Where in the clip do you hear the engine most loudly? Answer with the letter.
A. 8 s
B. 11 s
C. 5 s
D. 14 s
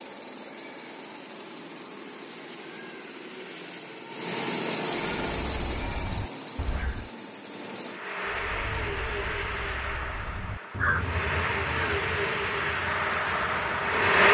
D.